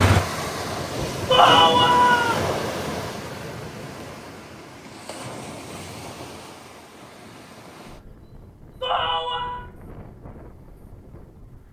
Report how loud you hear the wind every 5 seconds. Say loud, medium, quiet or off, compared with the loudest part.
loud, quiet, quiet.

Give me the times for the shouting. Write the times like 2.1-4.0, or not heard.
1.3-2.4, 8.8-9.7.